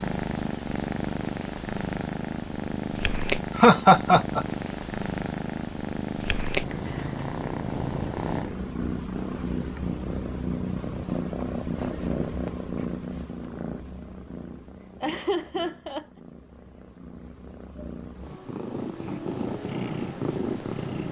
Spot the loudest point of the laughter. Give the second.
4 s.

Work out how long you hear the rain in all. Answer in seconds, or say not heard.
not heard.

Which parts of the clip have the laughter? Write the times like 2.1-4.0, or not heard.
3.5-4.5, 15.0-16.1.